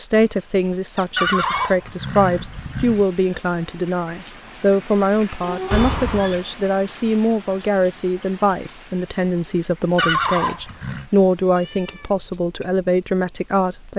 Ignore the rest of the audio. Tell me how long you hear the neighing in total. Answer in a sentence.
You can hear the neighing for 4 seconds altogether.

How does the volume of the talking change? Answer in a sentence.
The loudness of the talking stays about the same.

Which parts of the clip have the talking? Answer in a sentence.
You can hear the talking from 0.0 to 13.9 s.